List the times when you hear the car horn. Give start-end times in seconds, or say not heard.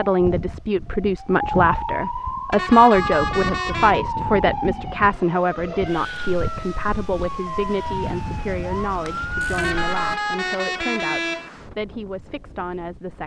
2.5-4.0, 9.6-11.5.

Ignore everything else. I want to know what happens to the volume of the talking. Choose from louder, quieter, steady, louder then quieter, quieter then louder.
quieter.